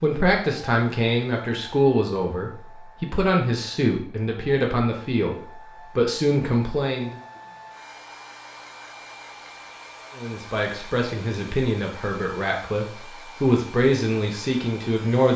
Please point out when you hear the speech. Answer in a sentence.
You can hear the speech from 0.0 to 7.2 s and from 10.2 to 15.3 s.